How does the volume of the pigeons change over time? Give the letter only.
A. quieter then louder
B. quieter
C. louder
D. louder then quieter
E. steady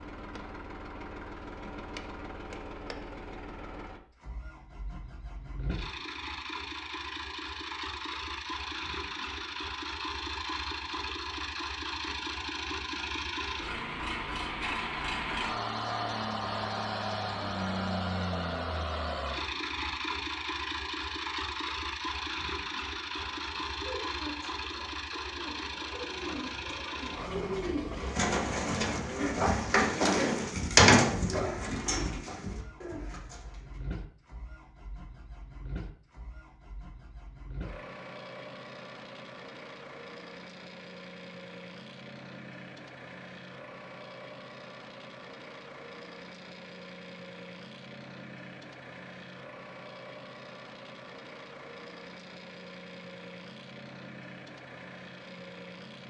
D.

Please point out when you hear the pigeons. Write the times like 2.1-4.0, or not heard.
23.1-33.8.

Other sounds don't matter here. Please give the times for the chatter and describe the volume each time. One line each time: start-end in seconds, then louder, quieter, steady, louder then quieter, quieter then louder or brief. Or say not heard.
not heard.